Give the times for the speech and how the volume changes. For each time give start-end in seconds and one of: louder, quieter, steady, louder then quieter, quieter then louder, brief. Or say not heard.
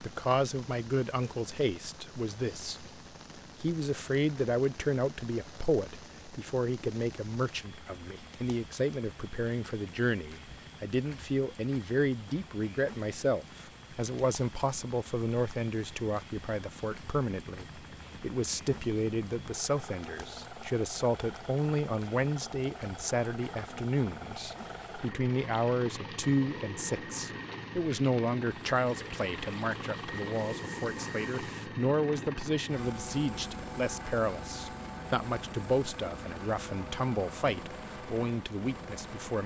0.0-2.9 brief
3.6-39.4 steady.